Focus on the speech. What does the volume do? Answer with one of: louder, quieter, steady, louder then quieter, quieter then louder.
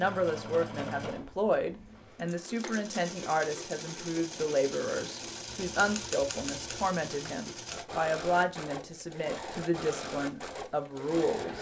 steady.